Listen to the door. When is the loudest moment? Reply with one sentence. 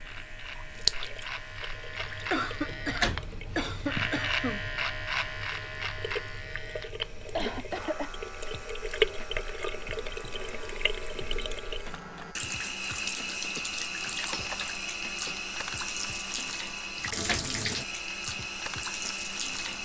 The volume of the door peaks at 3 seconds.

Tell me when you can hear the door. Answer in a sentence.
You can hear the door from 2.4 to 3.4 s and from 16.7 to 17.6 s.